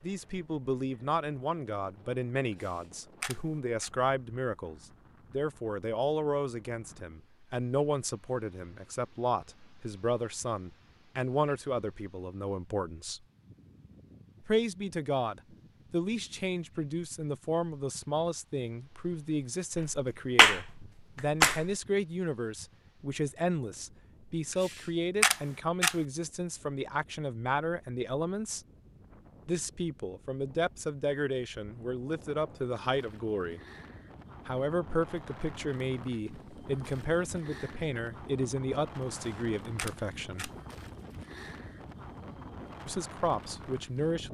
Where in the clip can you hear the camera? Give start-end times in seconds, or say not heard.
2.5-3.9, 24.5-25.9, 39.3-40.5.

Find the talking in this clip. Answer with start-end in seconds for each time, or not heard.
0.0-13.2, 14.4-28.6, 29.4-33.6, 34.5-40.5, 42.9-44.3.